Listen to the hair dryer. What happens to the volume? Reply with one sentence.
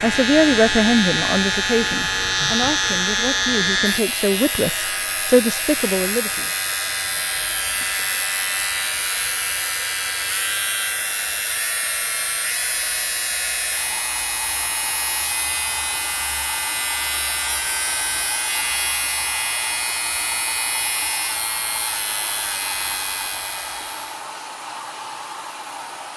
The volume of the hair dryer stays about the same.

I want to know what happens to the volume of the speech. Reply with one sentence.
The loudness of the speech goes down, then up.